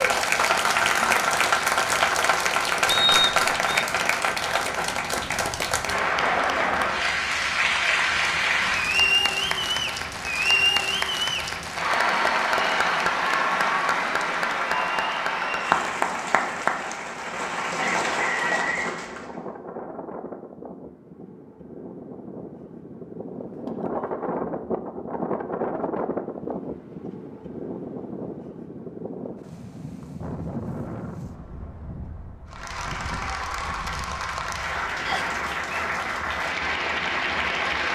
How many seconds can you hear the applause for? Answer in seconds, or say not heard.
25 s.